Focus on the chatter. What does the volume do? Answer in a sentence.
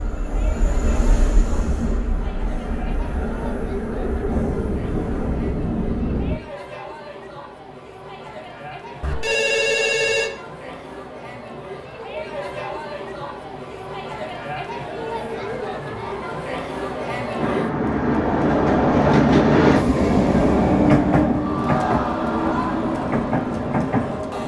The loudness of the chatter goes up.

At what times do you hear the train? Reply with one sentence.
The train can be heard from 0.0 to 6.4 s and from 17.4 to 24.4 s.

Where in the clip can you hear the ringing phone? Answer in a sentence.
The ringing phone can be heard from 9.0 to 10.3 s.